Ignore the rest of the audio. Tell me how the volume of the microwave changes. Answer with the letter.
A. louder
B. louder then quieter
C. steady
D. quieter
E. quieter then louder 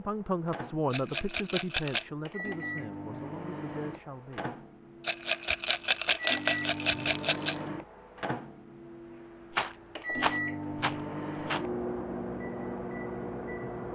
A.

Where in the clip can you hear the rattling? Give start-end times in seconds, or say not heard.
0.9-2.0, 5.0-7.5, 9.5-11.7.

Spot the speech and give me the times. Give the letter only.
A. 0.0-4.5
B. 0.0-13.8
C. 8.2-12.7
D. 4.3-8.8
A.